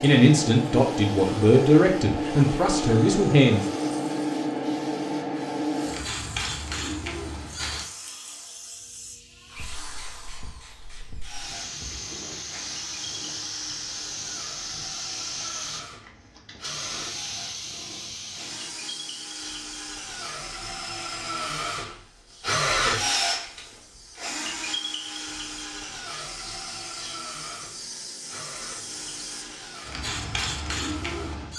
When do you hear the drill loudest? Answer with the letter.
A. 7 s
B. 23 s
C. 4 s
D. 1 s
B.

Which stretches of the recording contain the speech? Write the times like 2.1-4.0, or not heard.
0.0-3.7.